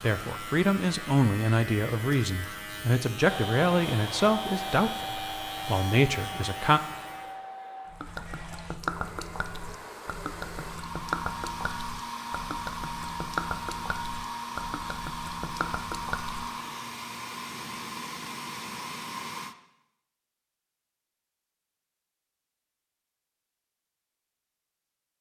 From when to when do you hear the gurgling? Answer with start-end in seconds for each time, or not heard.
7.9-16.5.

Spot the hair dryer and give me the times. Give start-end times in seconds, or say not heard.
3.1-19.6.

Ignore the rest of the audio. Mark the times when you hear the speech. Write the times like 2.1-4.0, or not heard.
0.0-6.8.